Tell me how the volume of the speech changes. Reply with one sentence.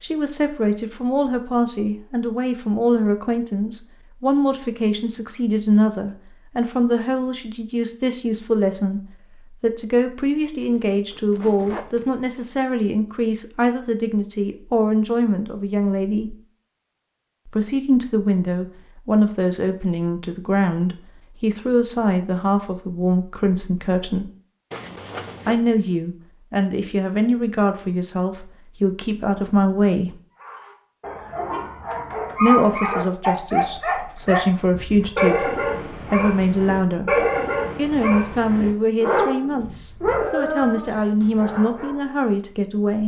The volume of the speech stays about the same.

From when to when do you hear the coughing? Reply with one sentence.
You can't hear the coughing here.